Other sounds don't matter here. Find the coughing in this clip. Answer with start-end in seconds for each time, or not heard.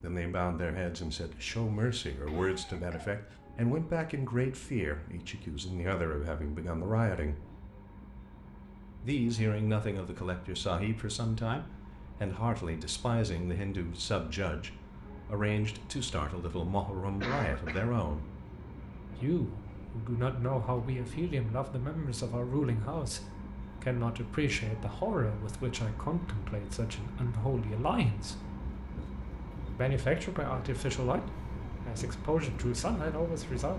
1.6-3.4, 17.2-17.9.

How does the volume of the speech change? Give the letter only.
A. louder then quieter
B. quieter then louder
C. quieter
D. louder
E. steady
E.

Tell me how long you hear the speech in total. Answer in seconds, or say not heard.
30 s.